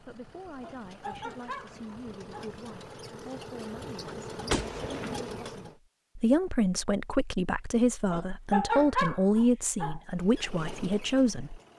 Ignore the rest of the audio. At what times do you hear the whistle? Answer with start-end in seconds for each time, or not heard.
not heard.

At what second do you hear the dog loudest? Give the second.
9 s.